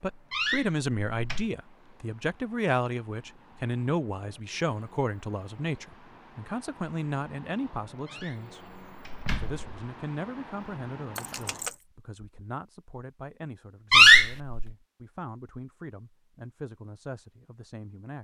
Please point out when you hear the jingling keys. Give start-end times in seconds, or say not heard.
11.2-11.8.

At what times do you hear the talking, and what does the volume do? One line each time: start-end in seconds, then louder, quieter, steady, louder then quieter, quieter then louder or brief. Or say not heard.
0.0-18.1 quieter.